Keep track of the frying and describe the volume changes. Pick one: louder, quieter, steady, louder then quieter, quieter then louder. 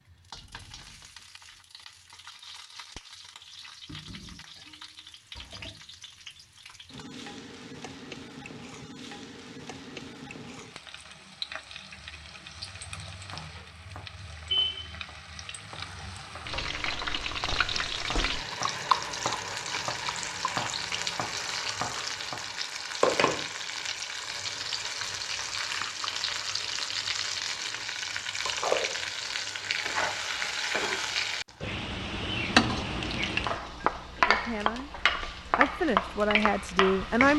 louder.